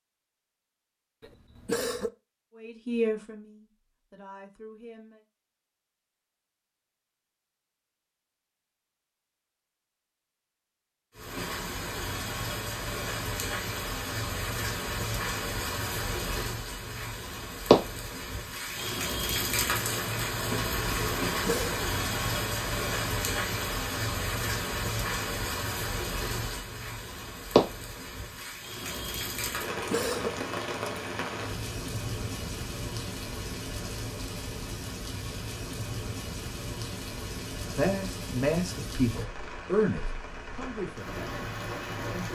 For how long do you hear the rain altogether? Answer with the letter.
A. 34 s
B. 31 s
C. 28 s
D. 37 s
B.